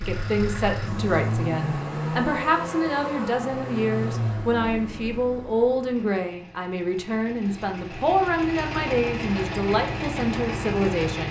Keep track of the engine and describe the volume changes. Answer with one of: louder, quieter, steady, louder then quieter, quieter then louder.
quieter then louder.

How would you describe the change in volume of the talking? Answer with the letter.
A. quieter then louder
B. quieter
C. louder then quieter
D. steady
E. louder
D.